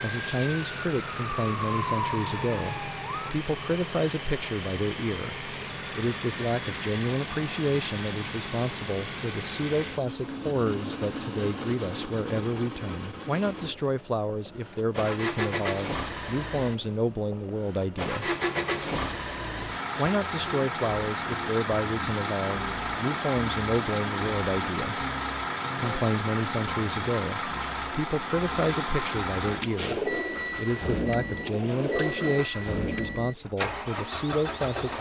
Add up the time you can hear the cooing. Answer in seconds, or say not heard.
3 s.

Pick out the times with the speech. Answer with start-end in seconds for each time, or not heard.
0.0-18.4, 19.9-25.0, 25.8-34.9.